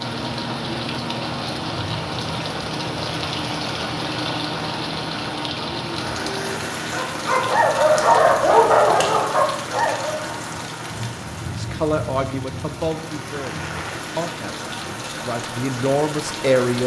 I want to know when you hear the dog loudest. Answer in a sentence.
The volume of the dog peaks at 9 seconds.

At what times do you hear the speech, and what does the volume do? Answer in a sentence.
You can hear the speech from 11.5 to 16.8 s, getting quieter then louder.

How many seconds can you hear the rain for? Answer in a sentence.
You can hear the rain for 17 seconds altogether.